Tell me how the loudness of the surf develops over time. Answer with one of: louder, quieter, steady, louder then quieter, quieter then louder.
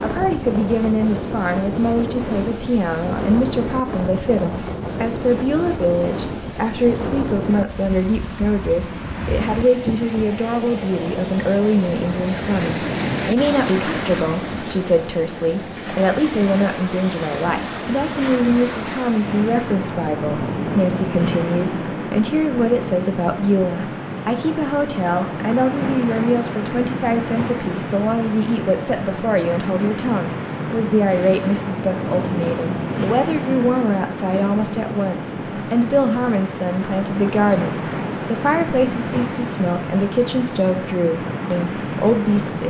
steady.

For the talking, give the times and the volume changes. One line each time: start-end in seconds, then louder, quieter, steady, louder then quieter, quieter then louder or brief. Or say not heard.
0.0-42.6 steady.